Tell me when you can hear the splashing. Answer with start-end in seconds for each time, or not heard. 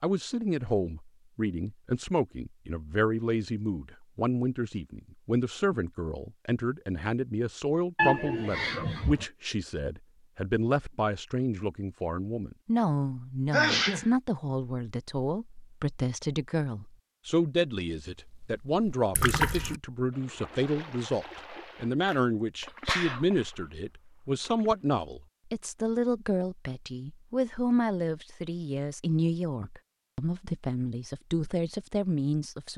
18.4-24.9.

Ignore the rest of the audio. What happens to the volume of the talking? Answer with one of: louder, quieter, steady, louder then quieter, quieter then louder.
steady.